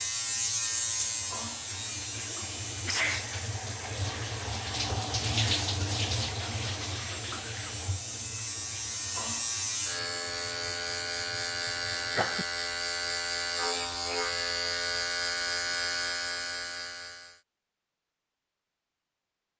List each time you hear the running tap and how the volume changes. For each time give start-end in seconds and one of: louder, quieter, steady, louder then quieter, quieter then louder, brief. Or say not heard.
0.0-12.1 louder then quieter.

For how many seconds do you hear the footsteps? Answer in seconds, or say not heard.
not heard.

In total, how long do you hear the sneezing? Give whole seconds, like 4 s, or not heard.
2 s.